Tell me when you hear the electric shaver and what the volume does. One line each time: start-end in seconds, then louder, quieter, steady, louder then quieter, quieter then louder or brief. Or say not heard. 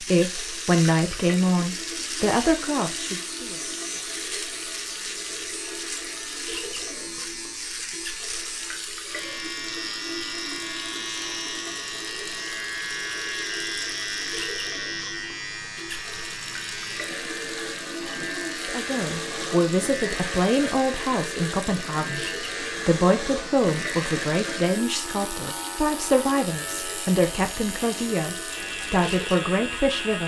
0.0-30.2 steady.